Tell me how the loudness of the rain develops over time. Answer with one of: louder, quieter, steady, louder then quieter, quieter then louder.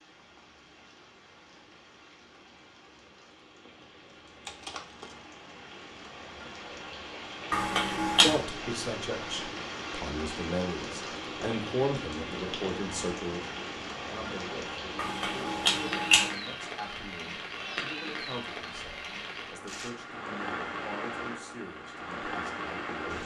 louder.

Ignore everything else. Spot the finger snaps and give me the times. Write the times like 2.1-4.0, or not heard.
7.5-8.4, 14.9-16.3.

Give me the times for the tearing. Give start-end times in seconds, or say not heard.
4.5-5.2, 19.6-20.1.